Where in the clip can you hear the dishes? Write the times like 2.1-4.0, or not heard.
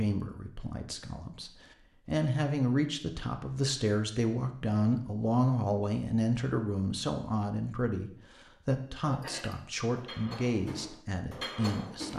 9.1-12.1.